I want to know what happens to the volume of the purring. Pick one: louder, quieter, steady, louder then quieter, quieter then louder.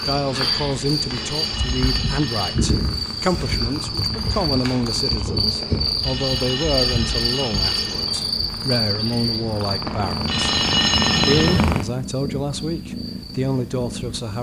louder.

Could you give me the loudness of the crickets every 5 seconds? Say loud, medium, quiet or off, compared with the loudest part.
loud, loud, quiet.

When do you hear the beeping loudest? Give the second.
11 s.